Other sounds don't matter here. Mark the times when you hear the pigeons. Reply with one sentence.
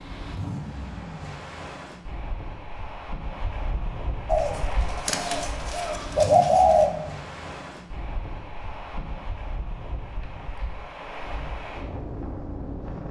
The pigeons can be heard from 4.2 to 6.9 s.